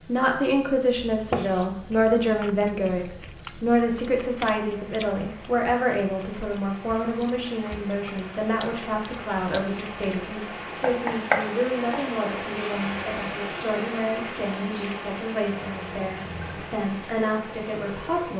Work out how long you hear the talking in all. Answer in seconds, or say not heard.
18 s.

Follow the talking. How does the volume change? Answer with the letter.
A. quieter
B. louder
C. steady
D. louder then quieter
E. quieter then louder
A.